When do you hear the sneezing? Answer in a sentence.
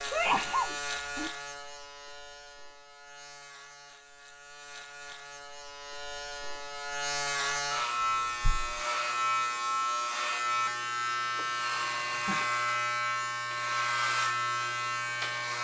You can hear the sneezing from 0.1 to 1.3 s, from 8.4 to 8.8 s and from 11.3 to 12.5 s.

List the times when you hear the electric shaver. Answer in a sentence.
The electric shaver can be heard from 0.0 to 15.6 s.